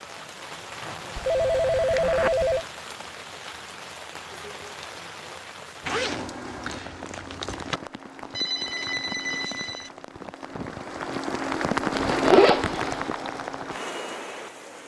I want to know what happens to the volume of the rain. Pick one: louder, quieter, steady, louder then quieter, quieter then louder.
louder.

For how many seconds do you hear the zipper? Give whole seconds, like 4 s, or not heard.
5 s.